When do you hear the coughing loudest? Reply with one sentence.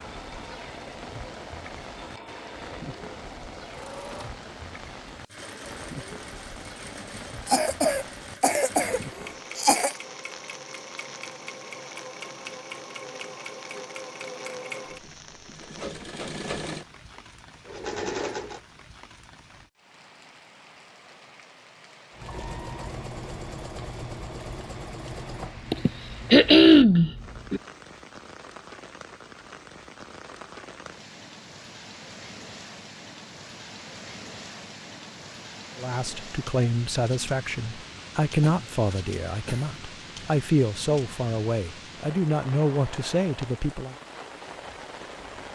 The volume of the coughing peaks at 27 seconds.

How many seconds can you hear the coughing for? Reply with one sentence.
You can hear the coughing for 6 seconds altogether.